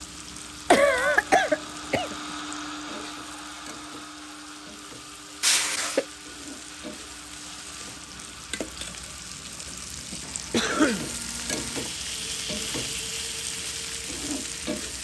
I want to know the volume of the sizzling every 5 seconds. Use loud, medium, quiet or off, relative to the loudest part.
medium, medium, loud.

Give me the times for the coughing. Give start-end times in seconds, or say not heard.
0.7-2.1, 5.4-6.0, 10.5-11.1.